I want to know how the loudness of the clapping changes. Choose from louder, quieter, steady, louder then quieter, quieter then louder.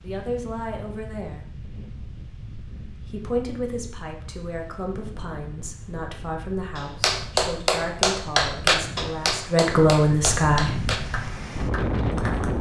quieter.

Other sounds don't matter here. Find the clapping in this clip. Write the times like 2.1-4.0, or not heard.
6.8-12.5.